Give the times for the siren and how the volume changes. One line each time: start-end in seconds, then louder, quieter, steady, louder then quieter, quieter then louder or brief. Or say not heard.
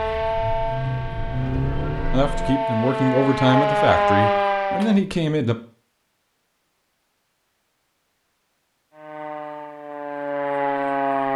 0.0-5.0 quieter then louder
8.9-11.3 brief.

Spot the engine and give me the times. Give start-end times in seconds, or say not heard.
0.0-2.5.